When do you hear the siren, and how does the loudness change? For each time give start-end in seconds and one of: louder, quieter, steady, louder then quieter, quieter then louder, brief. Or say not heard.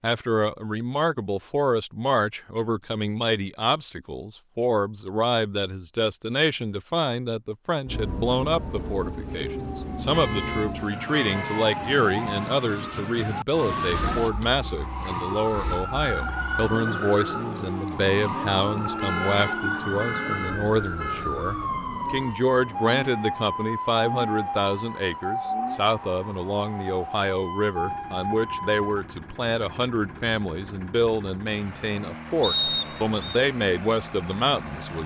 7.8-29.1 steady.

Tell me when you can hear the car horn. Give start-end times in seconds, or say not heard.
10.0-11.8, 18.8-21.2.